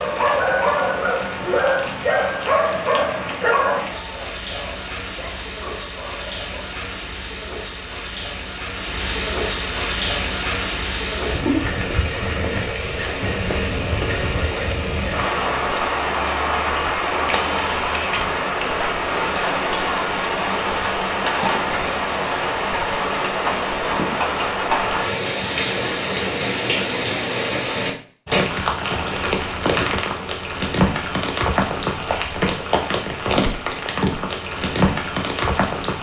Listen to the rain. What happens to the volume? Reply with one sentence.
The loudness of the rain goes up.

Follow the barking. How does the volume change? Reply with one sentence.
The volume of the barking goes down.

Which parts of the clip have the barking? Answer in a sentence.
You can hear the barking from 0.0 to 6.7 s.